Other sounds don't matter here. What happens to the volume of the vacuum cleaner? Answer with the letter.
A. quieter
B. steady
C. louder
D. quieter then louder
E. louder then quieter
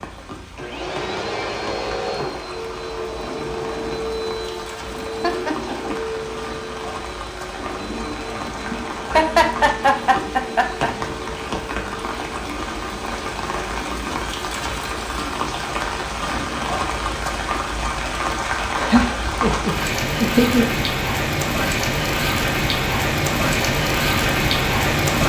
A.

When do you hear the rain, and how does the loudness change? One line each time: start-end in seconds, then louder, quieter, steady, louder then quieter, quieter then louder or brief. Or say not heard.
0.0-25.2 louder.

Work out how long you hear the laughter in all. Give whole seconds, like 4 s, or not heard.
5 s.